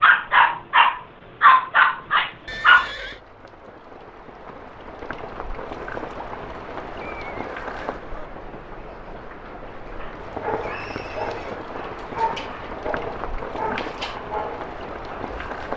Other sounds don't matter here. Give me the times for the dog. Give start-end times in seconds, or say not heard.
0.0-2.9, 9.9-15.6.